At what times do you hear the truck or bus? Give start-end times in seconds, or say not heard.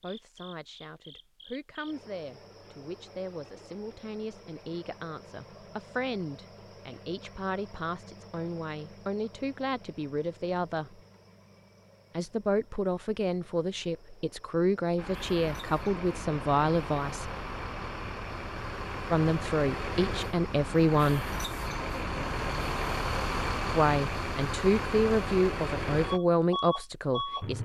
14.9-27.6.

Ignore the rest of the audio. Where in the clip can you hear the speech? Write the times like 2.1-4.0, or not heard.
0.0-11.0, 12.2-17.4, 19.1-21.4, 23.7-27.6.